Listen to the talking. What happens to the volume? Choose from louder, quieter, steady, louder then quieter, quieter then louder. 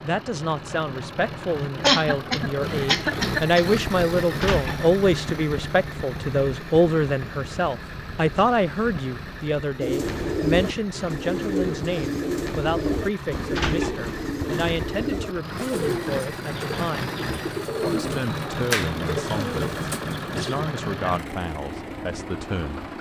quieter.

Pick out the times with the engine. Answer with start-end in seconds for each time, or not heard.
0.0-22.9.